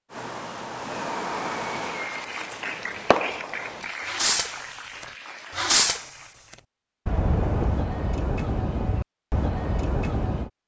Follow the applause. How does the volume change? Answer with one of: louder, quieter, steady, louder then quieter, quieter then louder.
quieter.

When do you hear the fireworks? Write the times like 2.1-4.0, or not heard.
0.1-4.7, 5.5-6.2, 7.0-10.5.